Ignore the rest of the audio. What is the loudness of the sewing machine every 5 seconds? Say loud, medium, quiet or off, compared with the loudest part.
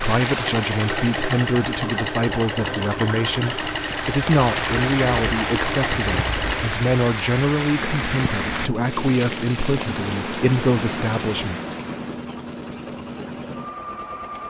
loud, loud, medium.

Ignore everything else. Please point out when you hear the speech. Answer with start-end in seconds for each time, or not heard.
0.0-11.6.